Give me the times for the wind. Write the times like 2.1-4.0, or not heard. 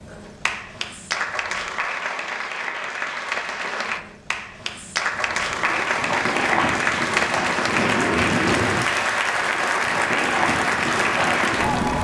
5.2-11.9.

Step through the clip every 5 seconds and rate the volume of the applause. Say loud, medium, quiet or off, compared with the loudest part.
medium, loud, loud.